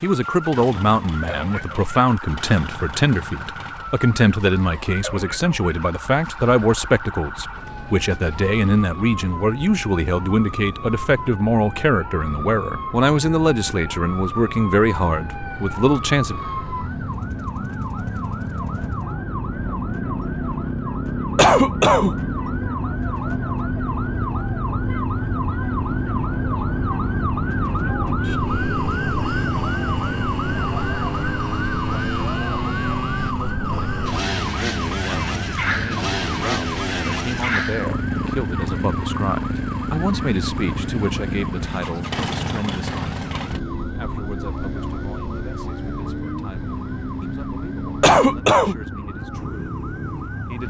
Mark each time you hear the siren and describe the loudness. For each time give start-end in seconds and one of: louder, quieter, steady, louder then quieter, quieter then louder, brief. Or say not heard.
0.2-50.6 louder then quieter.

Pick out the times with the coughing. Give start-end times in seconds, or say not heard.
21.4-22.1, 48.0-48.8.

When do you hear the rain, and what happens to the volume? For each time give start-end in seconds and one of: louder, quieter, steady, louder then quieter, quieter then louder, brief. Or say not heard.
not heard.